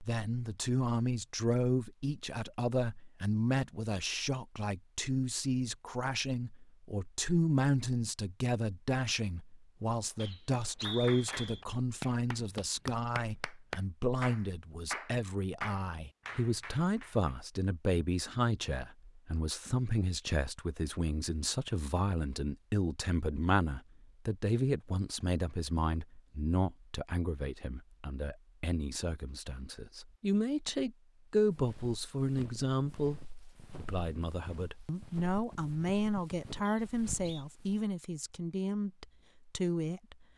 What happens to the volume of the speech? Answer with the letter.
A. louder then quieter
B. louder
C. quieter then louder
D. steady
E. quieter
D.